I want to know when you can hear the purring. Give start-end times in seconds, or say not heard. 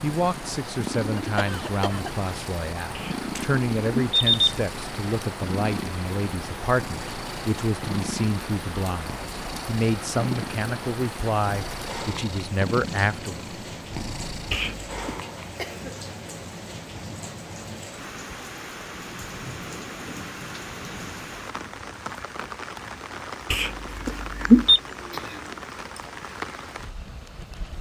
0.0-14.7.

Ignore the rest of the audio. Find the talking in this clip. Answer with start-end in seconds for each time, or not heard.
0.0-13.4.